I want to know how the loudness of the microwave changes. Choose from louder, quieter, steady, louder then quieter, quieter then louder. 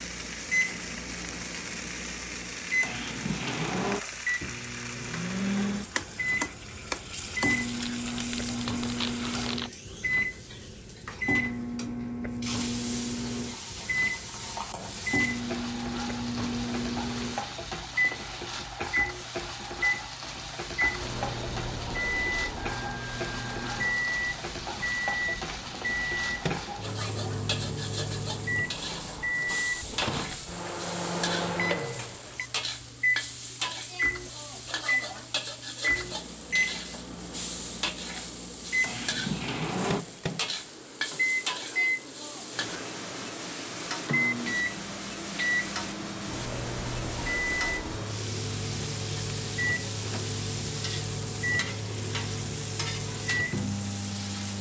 steady.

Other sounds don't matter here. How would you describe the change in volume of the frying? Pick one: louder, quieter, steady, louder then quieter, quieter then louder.
steady.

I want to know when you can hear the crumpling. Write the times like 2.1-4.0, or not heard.
7.7-9.7.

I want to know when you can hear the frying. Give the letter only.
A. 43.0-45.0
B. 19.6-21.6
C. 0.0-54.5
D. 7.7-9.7
C.